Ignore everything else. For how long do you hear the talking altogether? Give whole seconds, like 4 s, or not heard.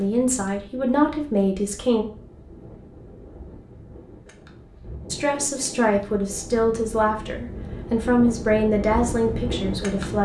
7 s.